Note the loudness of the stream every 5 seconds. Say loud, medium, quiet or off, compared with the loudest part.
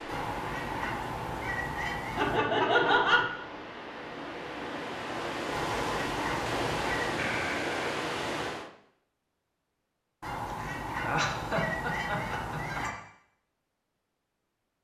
medium, loud, off.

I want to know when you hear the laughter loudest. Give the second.
3 s.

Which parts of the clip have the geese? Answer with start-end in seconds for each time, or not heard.
0.1-2.4, 5.5-7.2, 10.2-12.9.